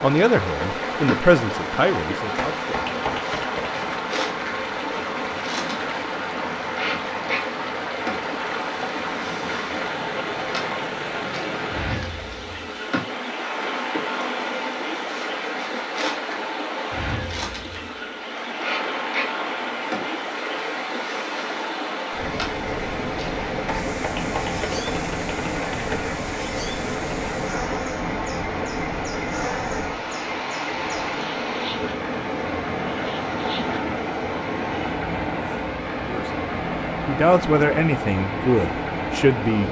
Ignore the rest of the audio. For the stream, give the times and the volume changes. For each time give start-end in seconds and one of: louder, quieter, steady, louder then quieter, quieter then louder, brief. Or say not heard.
0.0-39.6 steady.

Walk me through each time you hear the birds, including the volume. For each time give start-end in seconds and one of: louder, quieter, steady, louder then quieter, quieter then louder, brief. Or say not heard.
not heard.